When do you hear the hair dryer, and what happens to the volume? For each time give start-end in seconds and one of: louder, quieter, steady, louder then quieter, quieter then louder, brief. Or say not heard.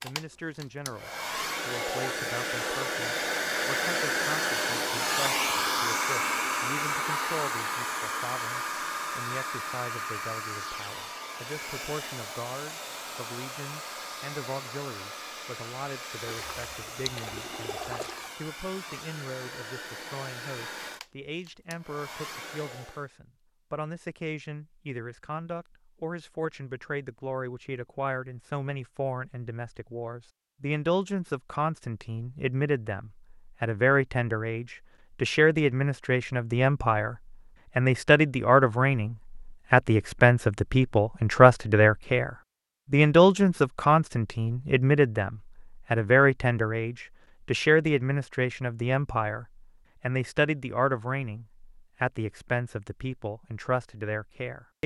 0.0-23.1 quieter.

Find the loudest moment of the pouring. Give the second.
18 s.